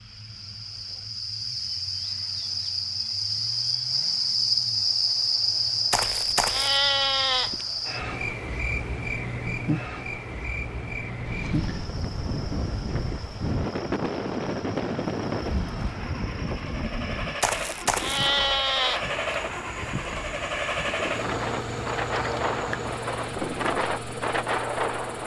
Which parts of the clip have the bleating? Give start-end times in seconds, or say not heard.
5.9-7.7, 17.4-19.1.